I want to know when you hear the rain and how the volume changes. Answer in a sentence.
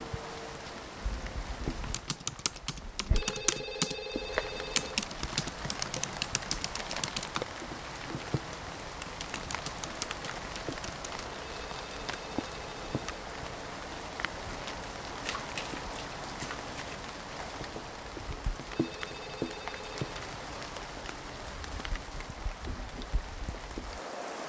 You can hear the rain from 0.0 to 24.4 s, at a steady volume.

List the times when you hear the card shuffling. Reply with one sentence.
You can hear the card shuffling from 15.2 to 17.1 s.